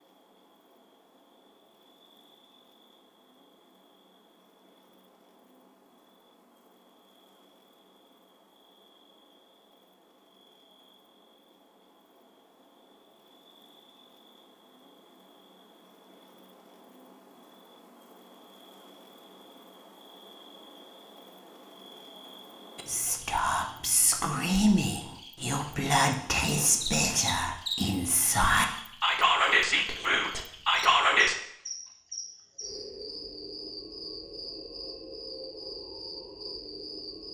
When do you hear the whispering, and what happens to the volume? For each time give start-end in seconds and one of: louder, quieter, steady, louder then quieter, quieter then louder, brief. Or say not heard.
22.8-31.4 steady.